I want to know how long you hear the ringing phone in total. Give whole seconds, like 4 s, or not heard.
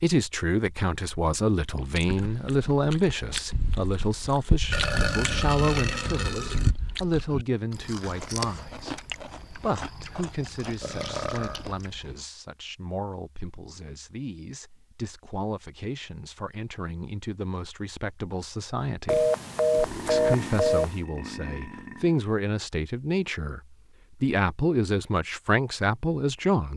2 s.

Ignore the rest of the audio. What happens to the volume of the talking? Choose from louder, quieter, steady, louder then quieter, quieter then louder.
quieter then louder.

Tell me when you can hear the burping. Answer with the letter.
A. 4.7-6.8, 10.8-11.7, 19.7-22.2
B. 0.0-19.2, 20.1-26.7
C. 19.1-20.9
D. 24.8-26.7
A.